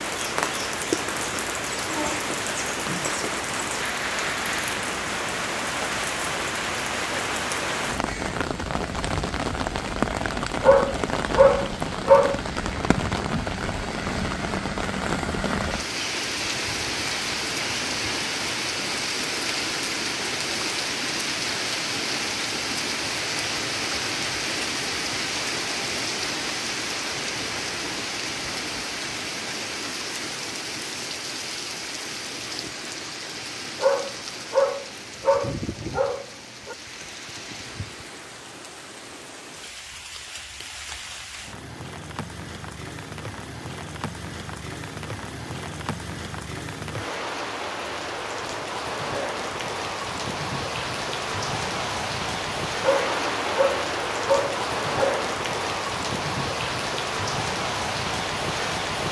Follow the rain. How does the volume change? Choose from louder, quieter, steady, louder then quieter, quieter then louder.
quieter then louder.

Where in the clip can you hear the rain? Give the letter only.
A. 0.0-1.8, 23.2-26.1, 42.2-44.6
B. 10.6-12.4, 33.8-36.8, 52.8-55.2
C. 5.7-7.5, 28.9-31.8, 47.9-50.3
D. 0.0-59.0
D.